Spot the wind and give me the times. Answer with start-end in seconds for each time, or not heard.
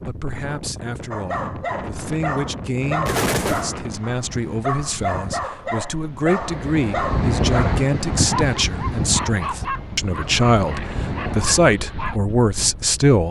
0.0-13.2.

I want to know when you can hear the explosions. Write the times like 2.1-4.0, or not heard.
3.0-3.7.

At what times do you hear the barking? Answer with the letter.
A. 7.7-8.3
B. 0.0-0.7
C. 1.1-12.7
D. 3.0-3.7
C.